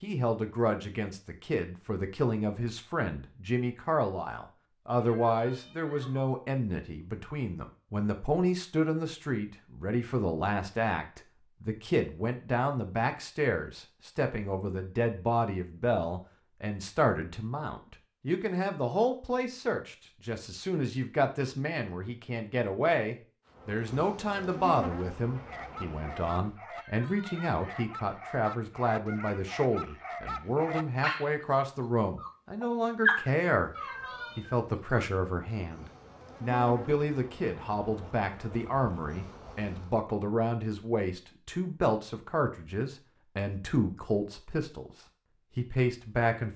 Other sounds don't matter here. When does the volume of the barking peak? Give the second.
33 s.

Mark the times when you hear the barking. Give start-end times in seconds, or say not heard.
25.4-35.1.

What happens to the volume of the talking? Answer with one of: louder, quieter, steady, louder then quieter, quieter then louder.
steady.